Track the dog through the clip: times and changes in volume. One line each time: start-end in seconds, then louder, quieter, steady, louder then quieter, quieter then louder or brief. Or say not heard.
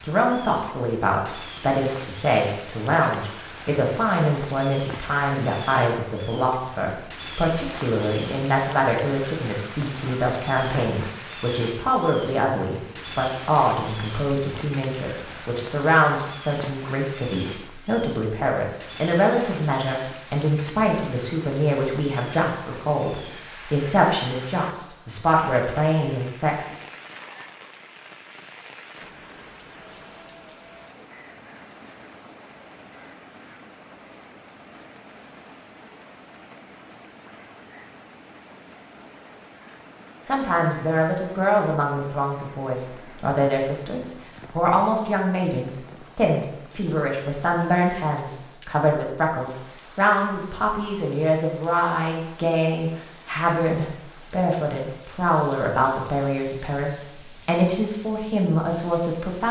not heard.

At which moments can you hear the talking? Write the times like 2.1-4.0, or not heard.
0.0-26.7, 40.2-59.4.